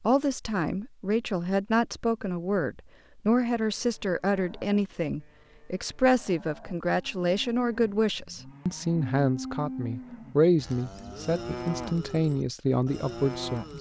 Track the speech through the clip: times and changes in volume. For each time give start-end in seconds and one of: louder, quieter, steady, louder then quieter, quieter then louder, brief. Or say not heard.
0.0-13.7 steady.